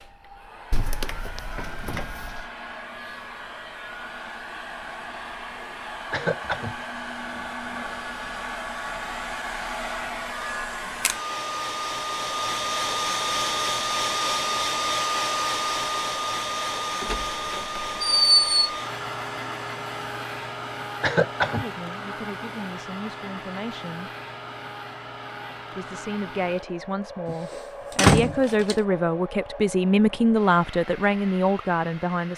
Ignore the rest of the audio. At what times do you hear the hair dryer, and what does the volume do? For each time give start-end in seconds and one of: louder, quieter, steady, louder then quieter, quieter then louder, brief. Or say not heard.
0.0-32.3 louder then quieter.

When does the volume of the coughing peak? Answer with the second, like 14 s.
21 s.